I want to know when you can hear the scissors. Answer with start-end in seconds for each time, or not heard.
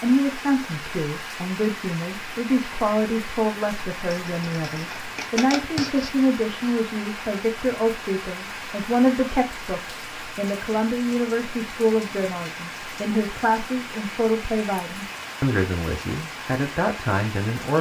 4.1-6.1.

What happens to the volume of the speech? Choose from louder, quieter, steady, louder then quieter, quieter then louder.
steady.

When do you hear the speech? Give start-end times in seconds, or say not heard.
0.0-17.7.